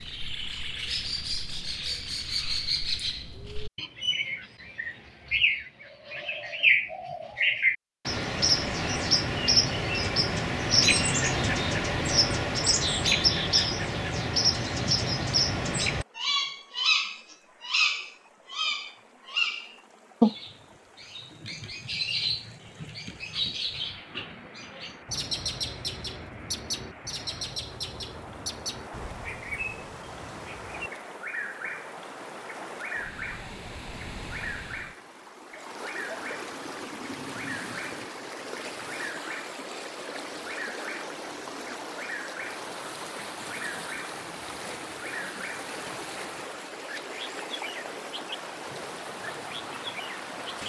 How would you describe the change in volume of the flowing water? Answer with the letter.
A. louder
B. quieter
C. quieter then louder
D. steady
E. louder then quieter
A.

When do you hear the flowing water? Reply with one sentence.
The flowing water can be heard from 15.8 to 50.6 s.